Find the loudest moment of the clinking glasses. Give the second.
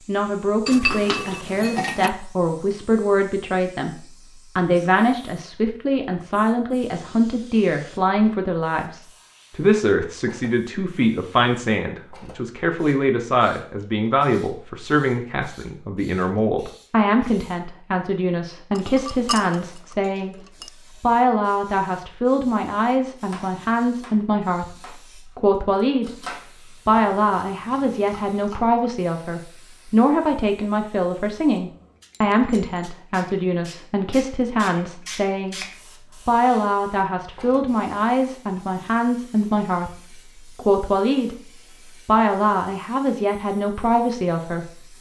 1 s.